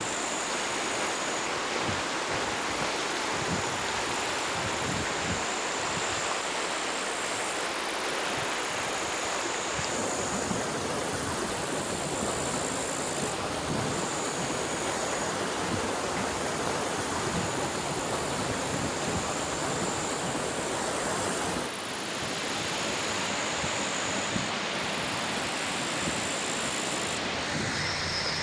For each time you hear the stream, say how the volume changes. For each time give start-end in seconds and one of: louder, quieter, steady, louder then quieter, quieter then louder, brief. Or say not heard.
0.0-28.3 steady.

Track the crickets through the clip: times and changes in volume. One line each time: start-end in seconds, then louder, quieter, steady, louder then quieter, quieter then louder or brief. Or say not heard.
0.0-28.3 steady.